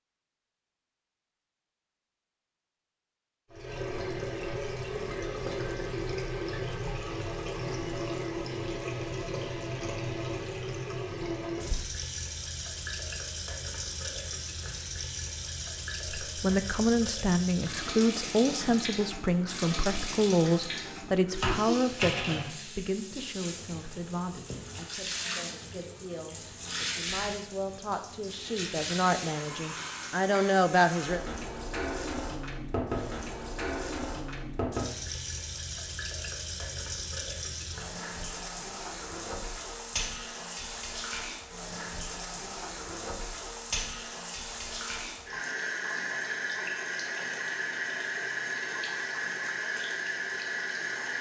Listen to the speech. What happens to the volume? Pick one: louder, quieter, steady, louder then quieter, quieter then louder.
quieter then louder.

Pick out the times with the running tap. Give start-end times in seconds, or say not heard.
3.5-51.1.